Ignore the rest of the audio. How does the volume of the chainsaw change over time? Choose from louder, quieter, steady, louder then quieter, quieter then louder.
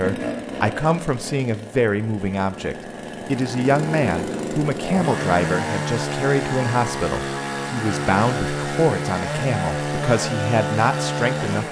louder.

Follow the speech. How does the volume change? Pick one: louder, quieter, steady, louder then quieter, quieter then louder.
steady.